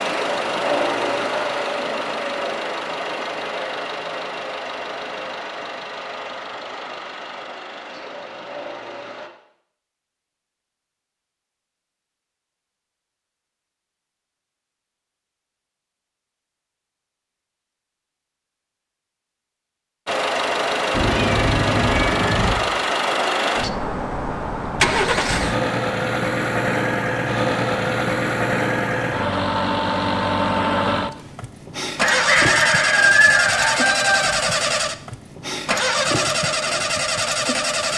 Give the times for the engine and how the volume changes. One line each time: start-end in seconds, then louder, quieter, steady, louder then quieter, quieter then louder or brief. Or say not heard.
0.0-9.3 quieter
20.1-37.9 steady.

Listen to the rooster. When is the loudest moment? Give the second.
33 s.